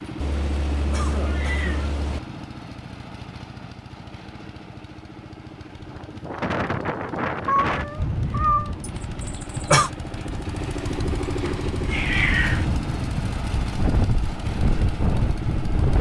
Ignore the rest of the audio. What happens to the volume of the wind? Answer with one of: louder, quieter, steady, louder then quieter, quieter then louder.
quieter then louder.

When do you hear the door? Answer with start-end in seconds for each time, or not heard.
not heard.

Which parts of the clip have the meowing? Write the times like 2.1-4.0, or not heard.
0.2-2.2, 7.5-8.8, 11.4-12.7.